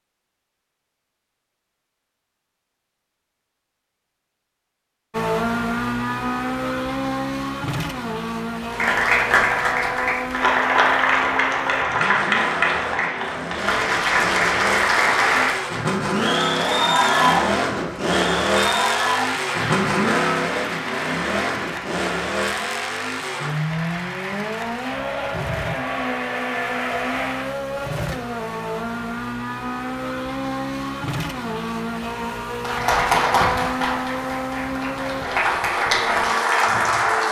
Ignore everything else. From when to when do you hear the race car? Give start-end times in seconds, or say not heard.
5.1-37.2.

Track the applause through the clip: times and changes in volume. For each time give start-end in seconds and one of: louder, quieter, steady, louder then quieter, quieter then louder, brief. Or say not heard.
8.7-27.5 quieter
32.6-37.2 quieter then louder.